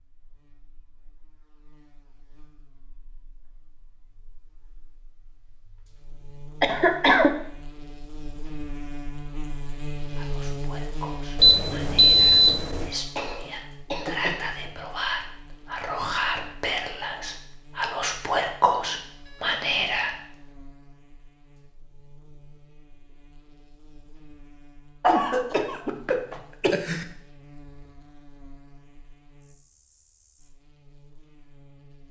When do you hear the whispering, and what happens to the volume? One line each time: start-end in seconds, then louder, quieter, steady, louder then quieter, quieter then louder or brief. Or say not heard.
10.1-20.1 louder.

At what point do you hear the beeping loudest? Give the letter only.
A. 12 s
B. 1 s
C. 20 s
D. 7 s
A.